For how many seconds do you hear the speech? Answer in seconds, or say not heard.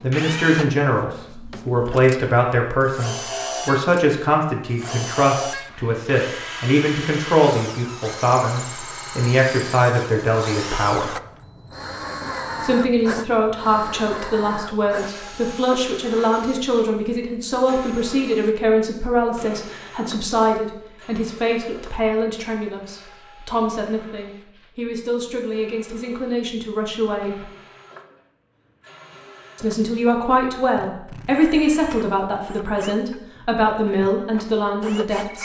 32 s.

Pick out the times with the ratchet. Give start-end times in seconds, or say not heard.
not heard.